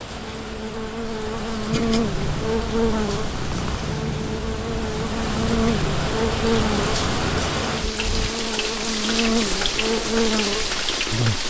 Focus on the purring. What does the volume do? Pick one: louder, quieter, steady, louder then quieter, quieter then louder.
steady.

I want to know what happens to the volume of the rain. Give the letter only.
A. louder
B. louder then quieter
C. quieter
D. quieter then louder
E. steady
A.